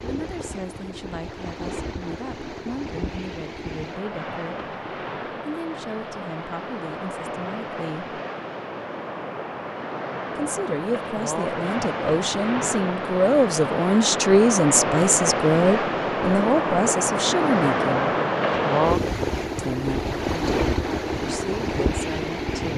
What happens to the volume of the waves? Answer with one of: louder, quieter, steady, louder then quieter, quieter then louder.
louder.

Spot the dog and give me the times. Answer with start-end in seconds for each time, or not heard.
not heard.